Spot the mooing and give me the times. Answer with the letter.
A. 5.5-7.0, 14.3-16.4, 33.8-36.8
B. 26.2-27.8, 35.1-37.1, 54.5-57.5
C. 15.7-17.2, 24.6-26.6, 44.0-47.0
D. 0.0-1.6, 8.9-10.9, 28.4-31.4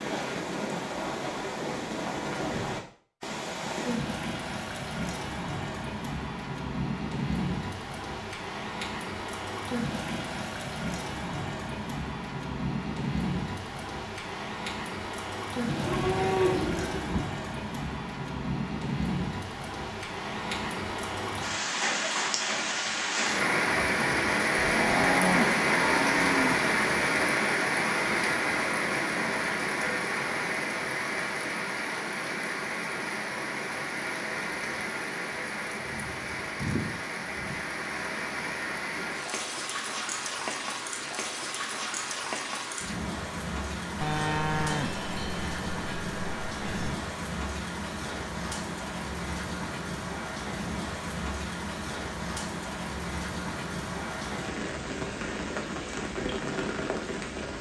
C.